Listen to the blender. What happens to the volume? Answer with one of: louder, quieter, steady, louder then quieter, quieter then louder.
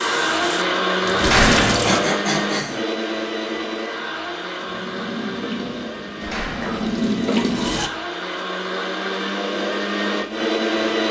quieter then louder.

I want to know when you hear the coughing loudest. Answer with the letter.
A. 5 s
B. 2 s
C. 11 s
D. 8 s
B.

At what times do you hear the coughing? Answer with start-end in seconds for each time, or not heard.
1.6-2.8, 6.5-7.6.